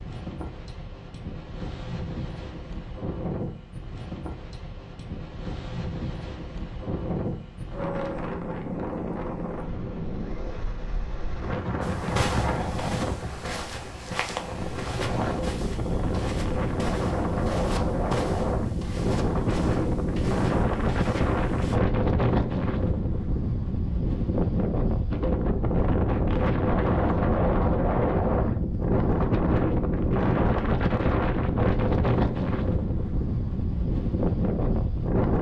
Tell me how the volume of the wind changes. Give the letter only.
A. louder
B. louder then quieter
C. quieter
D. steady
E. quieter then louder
A.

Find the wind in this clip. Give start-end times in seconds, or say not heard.
0.0-35.3.